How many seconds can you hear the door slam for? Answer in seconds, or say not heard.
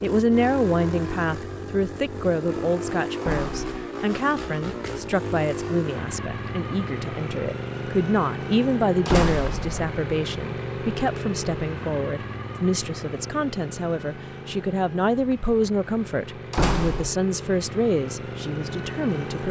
2 s.